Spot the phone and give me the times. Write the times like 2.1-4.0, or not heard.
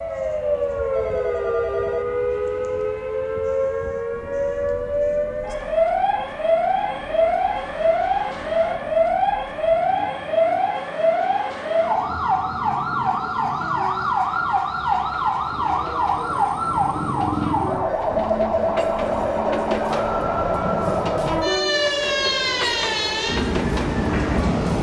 0.9-2.0.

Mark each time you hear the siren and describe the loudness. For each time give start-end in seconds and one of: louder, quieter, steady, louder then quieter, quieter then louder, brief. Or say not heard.
0.0-24.7 steady.